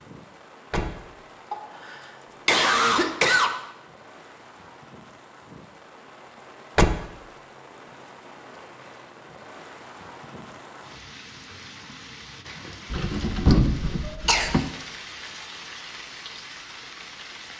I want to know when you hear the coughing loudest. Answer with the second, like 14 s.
3 s.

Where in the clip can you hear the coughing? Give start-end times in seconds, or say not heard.
1.5-3.5, 14.0-14.6.